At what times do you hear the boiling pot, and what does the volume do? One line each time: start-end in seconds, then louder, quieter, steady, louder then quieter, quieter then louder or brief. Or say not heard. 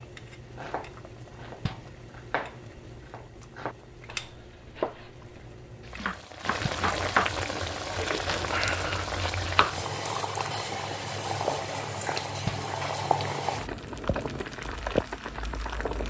0.0-16.0 louder.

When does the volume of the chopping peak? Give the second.
7 s.